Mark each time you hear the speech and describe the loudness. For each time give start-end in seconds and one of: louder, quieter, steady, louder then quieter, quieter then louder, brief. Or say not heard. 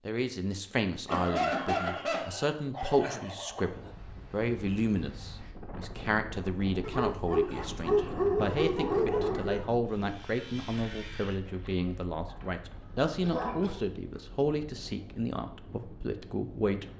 0.1-16.9 steady.